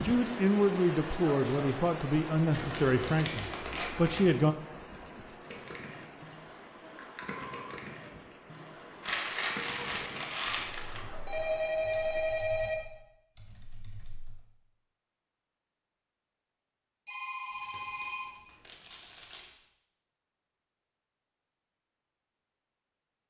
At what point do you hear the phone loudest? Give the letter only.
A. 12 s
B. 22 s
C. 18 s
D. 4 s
A.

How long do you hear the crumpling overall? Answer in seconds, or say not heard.
6 s.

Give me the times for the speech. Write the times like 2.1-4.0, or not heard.
0.0-4.5.